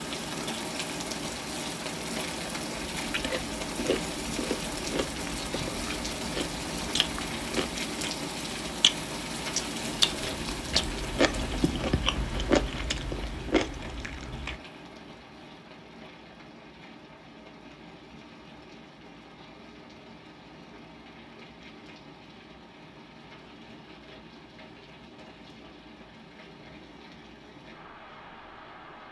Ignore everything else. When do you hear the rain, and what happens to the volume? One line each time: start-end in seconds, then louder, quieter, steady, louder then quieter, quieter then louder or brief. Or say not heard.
0.0-29.0 quieter.